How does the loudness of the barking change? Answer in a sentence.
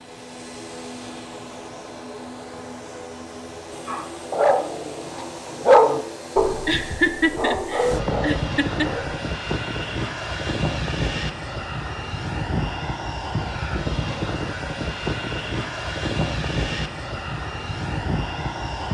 The volume of the barking goes up, then down.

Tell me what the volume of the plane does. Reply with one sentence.
The volume of the plane goes up.